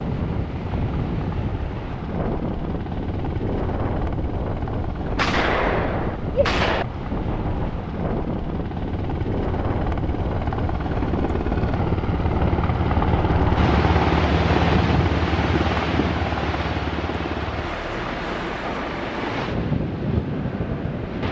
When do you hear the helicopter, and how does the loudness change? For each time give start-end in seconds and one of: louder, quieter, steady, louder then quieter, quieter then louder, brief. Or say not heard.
0.0-21.2 louder then quieter.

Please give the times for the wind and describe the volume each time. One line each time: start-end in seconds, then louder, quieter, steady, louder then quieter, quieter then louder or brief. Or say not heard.
0.0-21.2 steady.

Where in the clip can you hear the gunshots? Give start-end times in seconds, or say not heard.
5.2-6.8.